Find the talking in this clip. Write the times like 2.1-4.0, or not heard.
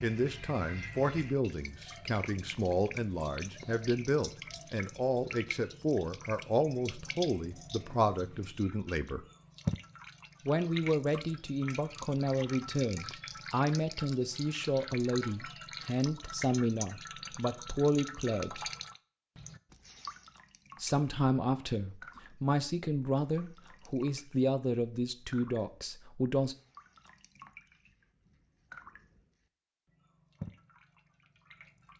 0.0-9.2, 10.4-18.7, 20.8-26.6.